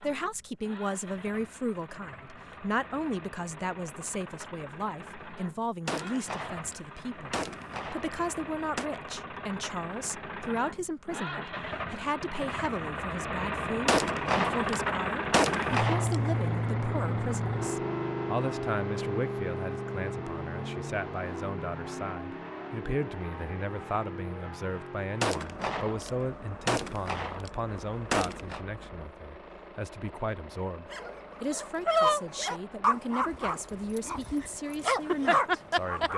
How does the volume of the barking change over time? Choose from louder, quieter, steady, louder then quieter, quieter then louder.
quieter then louder.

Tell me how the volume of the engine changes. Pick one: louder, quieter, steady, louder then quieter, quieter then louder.
louder then quieter.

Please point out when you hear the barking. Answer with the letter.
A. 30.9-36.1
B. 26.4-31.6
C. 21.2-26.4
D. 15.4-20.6
A.